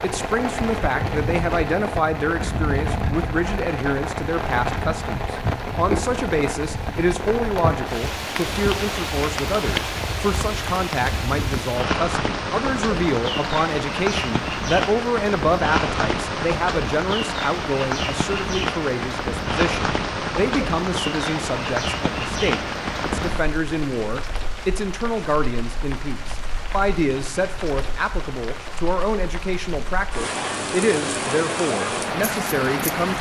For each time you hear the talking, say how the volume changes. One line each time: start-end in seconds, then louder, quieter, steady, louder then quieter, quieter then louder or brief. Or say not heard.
0.0-33.1 steady.